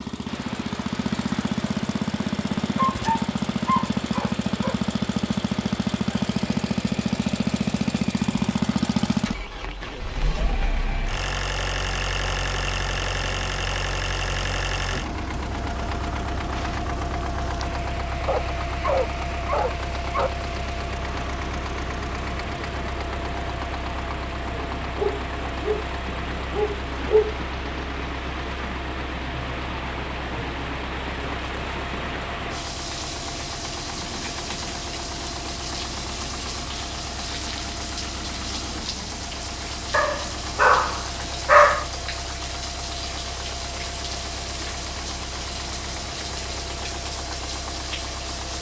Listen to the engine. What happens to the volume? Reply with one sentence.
The loudness of the engine goes down.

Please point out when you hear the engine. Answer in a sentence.
The engine can be heard from 0.0 to 48.5 s.